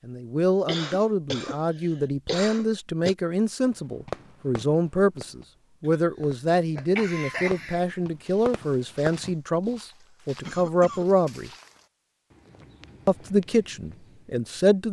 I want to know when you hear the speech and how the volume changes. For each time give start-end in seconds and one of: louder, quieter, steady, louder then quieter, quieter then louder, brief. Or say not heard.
0.1-11.5 steady
13.1-14.8 brief.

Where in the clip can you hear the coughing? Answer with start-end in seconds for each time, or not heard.
0.7-3.1, 6.2-7.8, 10.0-11.1.